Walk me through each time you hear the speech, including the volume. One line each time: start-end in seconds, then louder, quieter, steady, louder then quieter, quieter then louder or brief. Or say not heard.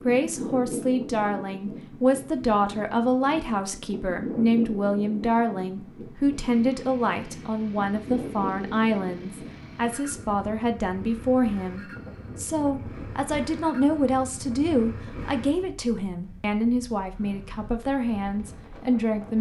0.0-19.3 steady.